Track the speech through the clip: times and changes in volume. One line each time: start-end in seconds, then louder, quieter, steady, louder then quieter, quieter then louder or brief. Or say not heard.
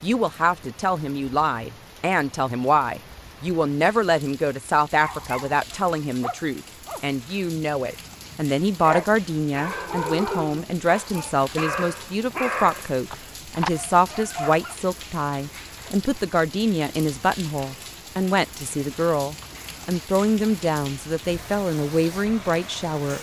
0.0-23.1 steady.